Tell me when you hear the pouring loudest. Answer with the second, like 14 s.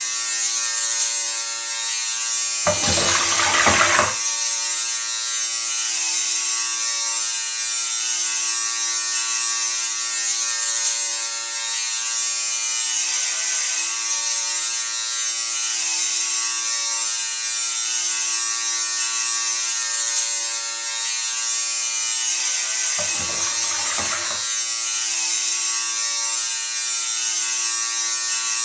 4 s.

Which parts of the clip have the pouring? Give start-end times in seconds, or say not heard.
2.6-4.2, 22.9-24.4.